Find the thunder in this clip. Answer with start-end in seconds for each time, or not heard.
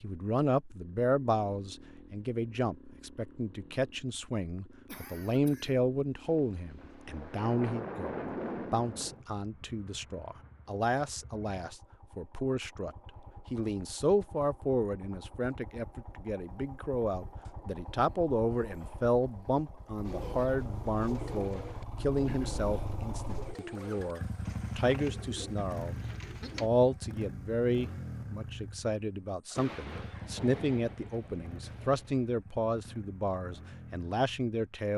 6.2-9.2, 29.6-32.3.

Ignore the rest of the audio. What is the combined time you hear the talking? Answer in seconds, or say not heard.
35 s.